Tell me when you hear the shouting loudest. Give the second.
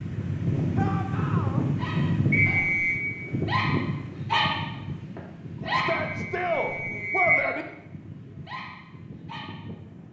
7 s.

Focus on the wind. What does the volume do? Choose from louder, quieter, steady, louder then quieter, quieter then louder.
quieter.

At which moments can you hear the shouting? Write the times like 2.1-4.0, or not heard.
0.8-1.6, 5.7-7.7.